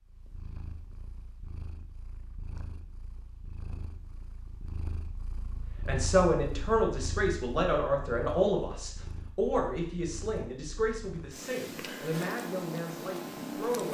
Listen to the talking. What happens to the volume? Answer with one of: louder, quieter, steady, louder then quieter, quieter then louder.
quieter.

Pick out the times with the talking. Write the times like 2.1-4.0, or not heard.
5.8-13.8.